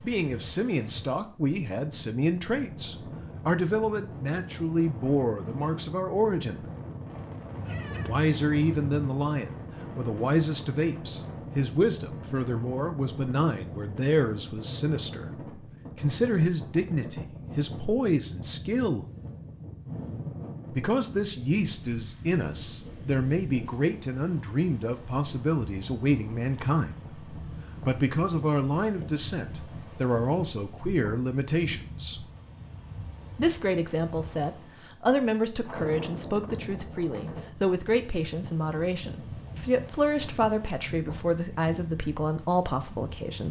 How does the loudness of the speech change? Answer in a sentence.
The loudness of the speech stays about the same.